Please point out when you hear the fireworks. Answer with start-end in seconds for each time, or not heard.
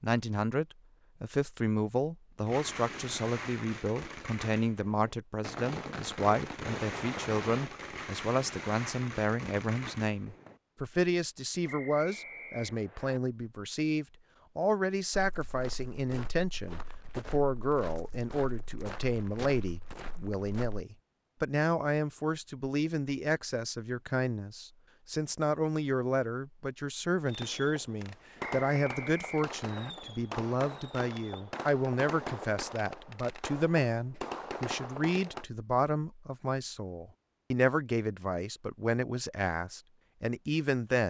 2.5-10.6, 27.2-35.5.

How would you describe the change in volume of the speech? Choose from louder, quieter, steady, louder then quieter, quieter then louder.
steady.